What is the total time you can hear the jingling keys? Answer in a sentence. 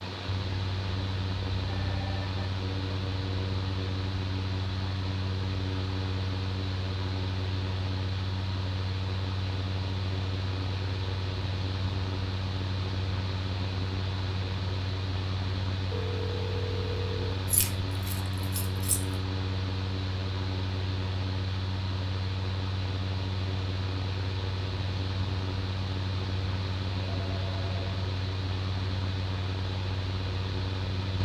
The jingling keys can be heard for 2 seconds in total.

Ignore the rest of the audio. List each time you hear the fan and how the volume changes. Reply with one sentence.
The fan can be heard from 0.0 to 31.2 s, at a steady volume.